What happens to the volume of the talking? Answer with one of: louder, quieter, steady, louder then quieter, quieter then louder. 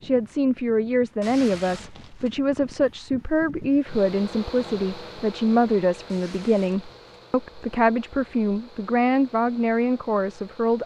steady.